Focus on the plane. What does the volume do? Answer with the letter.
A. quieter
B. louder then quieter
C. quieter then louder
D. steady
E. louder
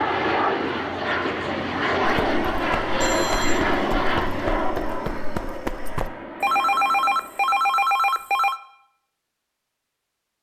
A.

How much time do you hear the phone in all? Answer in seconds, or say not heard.
3 s.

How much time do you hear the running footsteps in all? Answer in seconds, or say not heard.
4 s.